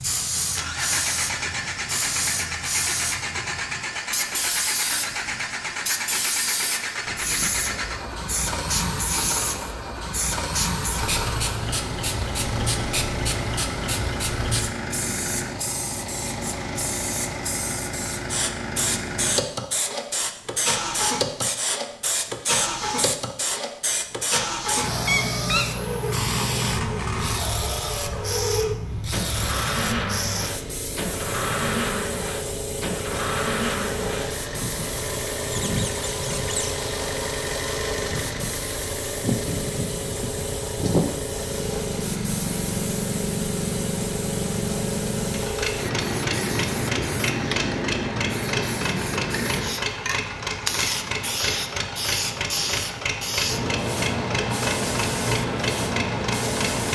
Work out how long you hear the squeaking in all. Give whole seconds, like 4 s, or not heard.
2 s.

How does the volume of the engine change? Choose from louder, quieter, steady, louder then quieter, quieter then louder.
steady.